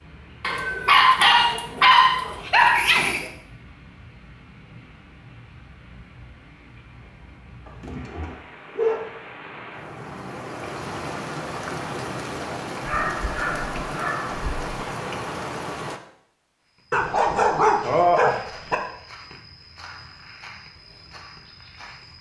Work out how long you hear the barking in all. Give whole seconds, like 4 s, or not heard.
8 s.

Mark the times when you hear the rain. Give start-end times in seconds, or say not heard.
0.0-16.0.